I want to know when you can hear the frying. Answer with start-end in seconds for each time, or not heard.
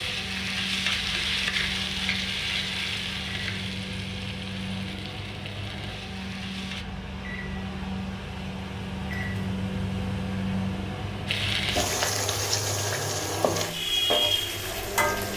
0.0-6.8, 11.2-15.3.